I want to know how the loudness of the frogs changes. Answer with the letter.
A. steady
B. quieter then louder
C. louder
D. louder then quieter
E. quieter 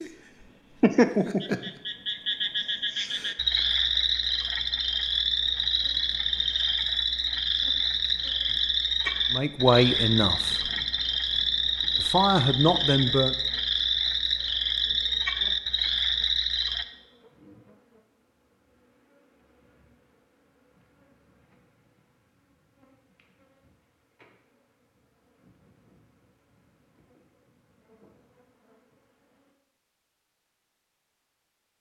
A.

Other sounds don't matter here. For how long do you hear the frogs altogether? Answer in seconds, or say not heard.
17 s.